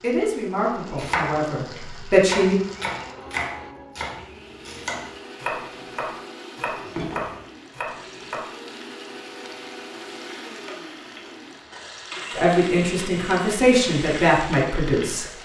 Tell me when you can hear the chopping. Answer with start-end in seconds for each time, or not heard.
0.9-8.4.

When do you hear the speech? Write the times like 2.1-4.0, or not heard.
0.0-2.5, 12.3-15.3.